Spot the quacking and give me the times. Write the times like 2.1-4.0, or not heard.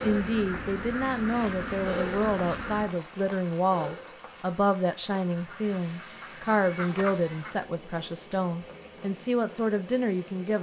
0.0-2.9, 5.3-7.7.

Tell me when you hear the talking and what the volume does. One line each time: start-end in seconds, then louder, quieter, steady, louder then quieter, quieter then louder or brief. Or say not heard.
0.0-10.5 steady.